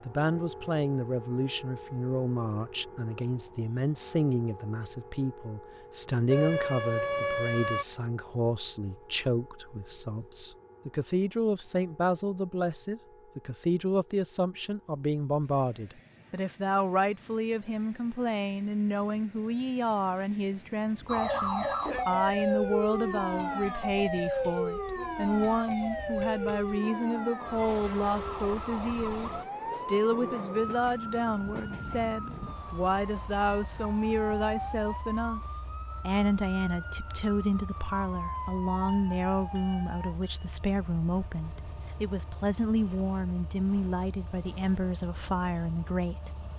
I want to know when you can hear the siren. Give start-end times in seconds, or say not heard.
6.3-7.8, 21.1-40.1.